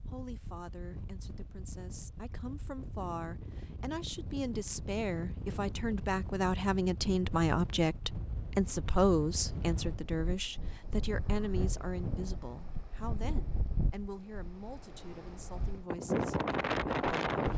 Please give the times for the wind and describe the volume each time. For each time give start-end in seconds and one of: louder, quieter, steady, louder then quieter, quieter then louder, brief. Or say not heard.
0.0-17.5 louder.